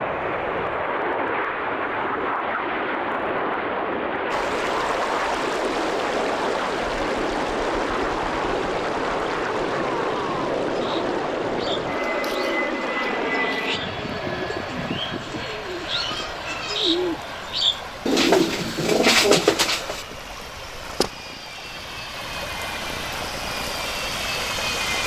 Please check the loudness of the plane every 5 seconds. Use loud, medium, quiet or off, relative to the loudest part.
loud, loud, loud, medium, medium.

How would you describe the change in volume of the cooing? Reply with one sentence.
The volume of the cooing goes up.